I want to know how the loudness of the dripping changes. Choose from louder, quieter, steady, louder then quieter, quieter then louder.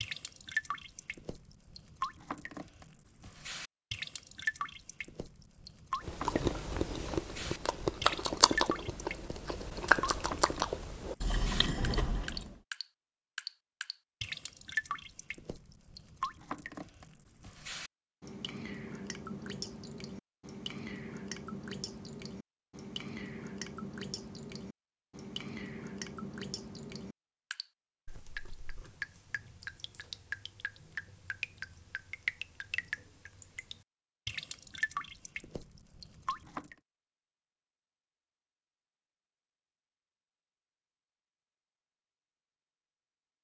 steady.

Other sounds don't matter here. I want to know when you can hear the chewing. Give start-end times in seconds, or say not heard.
6.0-12.6.